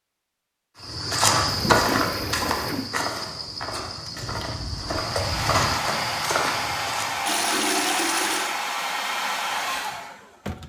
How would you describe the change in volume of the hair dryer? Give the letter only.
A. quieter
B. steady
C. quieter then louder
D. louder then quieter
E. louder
B.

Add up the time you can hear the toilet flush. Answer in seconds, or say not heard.
3 s.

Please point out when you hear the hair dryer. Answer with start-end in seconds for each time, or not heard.
5.0-10.6.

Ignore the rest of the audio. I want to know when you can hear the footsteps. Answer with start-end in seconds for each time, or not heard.
0.8-7.3.